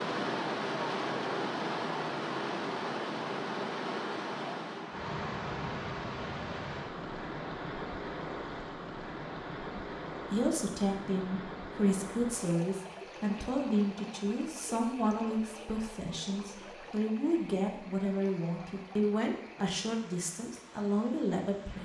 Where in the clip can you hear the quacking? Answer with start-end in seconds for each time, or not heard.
not heard.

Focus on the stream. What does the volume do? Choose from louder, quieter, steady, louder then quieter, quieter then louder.
quieter.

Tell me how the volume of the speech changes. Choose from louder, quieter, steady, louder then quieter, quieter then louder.
steady.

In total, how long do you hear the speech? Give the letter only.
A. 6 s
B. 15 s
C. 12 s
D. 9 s
C.